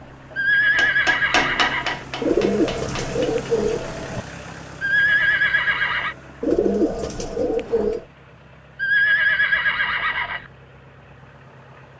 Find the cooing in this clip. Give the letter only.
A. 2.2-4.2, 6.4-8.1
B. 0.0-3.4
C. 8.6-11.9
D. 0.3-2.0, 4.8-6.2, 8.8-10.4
A.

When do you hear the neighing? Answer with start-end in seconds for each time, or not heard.
0.3-2.0, 4.8-6.2, 8.8-10.4.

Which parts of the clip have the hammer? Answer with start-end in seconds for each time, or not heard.
0.0-3.4.